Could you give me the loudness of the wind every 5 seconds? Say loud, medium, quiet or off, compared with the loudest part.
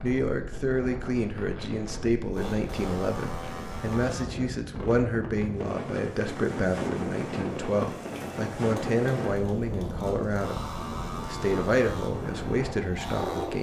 medium, loud, loud.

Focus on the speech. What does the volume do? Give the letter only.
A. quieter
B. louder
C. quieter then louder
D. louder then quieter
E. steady
E.